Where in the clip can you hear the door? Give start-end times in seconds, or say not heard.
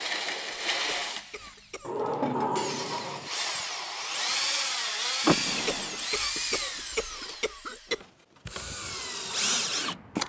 1.8-3.3, 5.2-6.0.